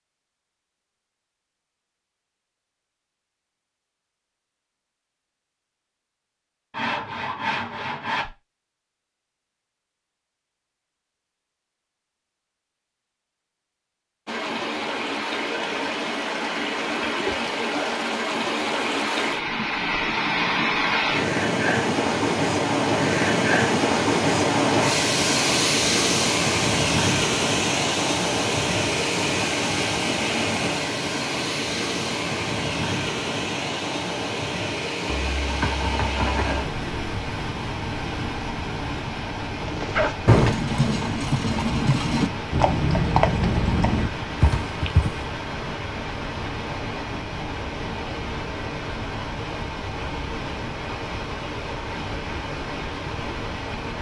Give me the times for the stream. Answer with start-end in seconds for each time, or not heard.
14.2-53.9.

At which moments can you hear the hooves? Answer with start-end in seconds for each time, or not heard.
39.6-45.2.